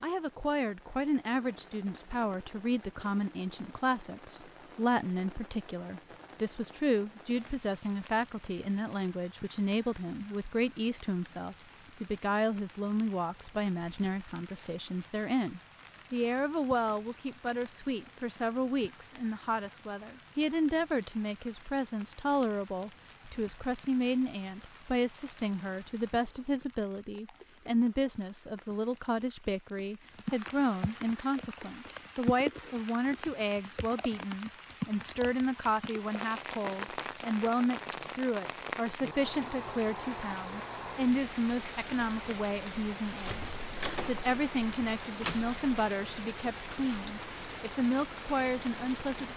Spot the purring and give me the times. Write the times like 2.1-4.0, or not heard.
not heard.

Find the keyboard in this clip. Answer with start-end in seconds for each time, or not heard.
not heard.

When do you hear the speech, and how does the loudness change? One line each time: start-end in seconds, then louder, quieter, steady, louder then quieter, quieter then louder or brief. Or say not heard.
0.0-49.3 steady.